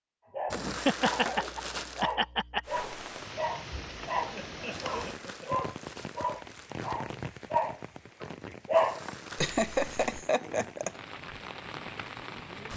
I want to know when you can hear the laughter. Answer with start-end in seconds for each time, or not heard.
0.5-2.6, 4.3-5.7, 9.1-10.9.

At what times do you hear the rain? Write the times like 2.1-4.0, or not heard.
2.6-12.7.